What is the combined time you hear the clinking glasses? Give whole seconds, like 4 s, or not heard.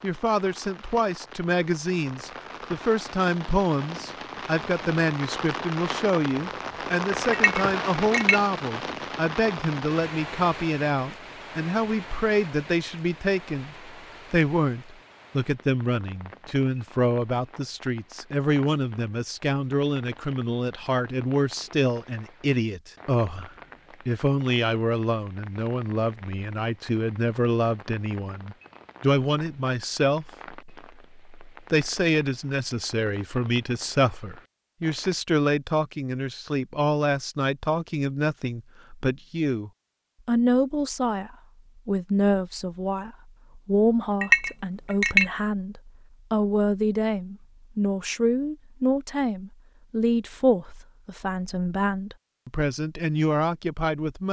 2 s.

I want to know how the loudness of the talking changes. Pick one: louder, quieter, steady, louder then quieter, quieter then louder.
steady.